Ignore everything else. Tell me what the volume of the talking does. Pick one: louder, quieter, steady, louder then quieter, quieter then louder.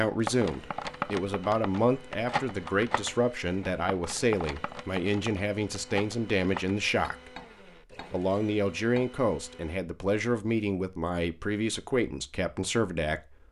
steady.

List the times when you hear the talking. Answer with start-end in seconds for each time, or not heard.
0.0-7.3, 8.1-13.3.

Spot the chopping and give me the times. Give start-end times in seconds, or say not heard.
not heard.